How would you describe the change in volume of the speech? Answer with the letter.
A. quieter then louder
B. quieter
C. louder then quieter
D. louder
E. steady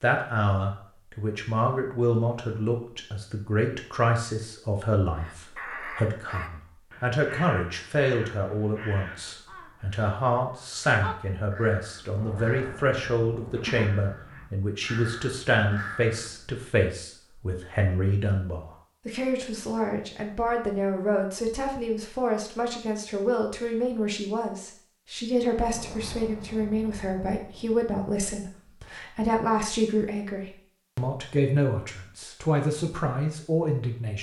E.